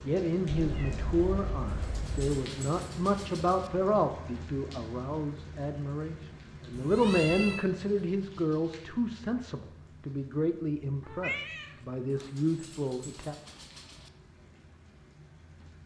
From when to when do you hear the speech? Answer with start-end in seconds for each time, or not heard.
0.0-13.3.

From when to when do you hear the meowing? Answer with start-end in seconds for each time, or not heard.
0.5-2.4, 6.7-7.7, 11.0-12.2.